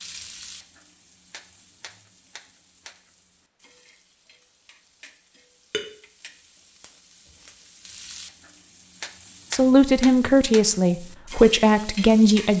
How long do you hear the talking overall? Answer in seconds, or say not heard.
3 s.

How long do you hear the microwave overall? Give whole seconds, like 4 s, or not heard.
not heard.